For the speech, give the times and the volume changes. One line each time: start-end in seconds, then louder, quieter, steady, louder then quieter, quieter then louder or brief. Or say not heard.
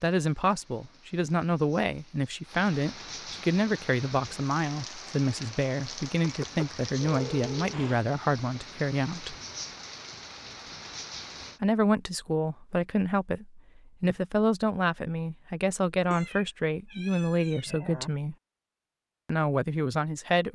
0.0-9.3 steady
11.6-18.4 steady
19.2-20.5 brief.